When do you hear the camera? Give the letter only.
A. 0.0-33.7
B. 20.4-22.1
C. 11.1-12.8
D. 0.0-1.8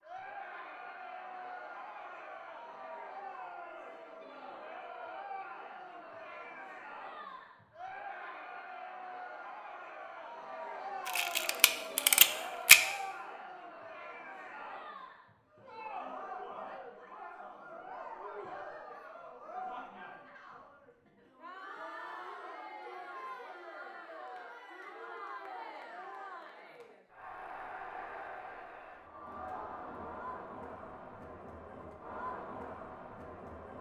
C.